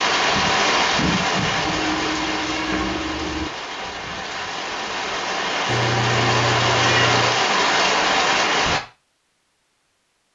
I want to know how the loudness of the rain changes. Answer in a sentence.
The loudness of the rain goes down, then up.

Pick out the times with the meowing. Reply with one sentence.
You can hear the meowing from 1.6 to 3.5 s and from 5.7 to 7.4 s.